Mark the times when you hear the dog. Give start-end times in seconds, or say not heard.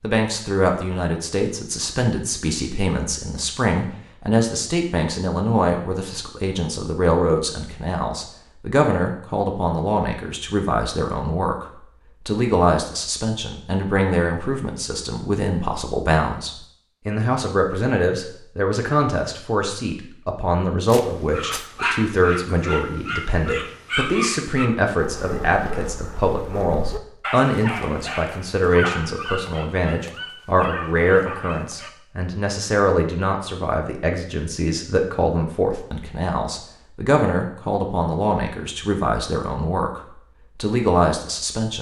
20.9-31.9.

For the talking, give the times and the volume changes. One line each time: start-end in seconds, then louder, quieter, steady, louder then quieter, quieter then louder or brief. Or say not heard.
0.0-41.7 steady.